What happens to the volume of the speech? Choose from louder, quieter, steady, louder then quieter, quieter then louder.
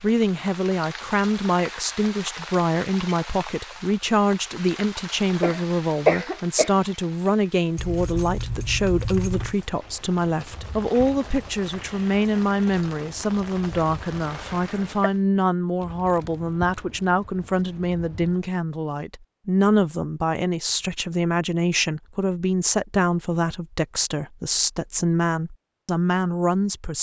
steady.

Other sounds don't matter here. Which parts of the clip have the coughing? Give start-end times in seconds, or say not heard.
5.4-6.8, 14.2-15.1.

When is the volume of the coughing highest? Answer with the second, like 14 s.
6 s.